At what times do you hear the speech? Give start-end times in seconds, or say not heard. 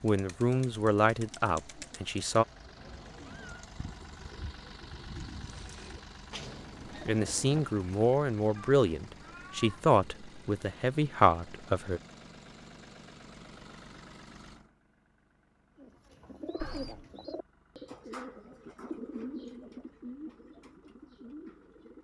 0.0-2.5, 7.0-12.0.